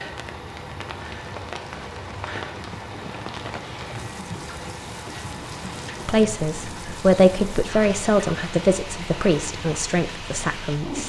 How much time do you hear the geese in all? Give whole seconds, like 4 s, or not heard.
not heard.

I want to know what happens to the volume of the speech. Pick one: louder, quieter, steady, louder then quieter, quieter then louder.
quieter.